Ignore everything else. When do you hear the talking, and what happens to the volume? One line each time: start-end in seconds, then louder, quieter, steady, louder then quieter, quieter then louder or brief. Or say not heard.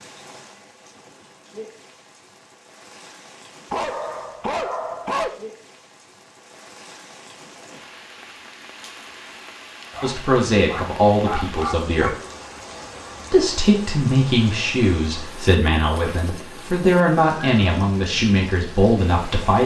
10.0-12.2 brief
13.3-19.6 steady.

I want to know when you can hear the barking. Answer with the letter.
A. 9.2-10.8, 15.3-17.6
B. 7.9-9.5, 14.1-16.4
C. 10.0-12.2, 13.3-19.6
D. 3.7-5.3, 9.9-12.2
D.